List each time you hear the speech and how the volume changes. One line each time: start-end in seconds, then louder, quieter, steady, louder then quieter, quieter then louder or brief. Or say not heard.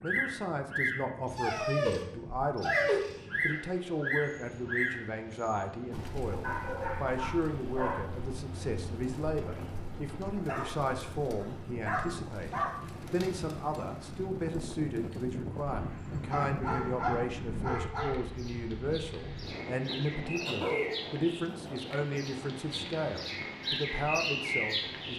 0.0-25.1 steady.